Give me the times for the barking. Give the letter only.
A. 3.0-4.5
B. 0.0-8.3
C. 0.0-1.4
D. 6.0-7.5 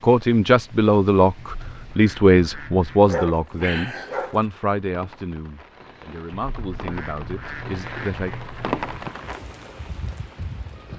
A.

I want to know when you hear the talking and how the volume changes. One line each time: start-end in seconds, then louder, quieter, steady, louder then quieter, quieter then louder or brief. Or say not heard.
0.0-8.3 quieter.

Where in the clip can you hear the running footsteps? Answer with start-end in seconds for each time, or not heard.
not heard.